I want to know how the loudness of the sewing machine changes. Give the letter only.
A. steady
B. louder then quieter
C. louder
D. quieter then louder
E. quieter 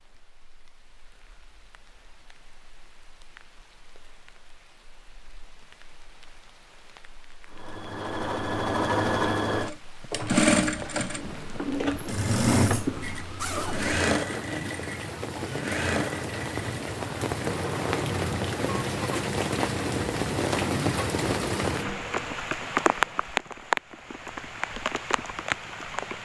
E.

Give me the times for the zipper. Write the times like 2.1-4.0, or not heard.
12.8-14.0.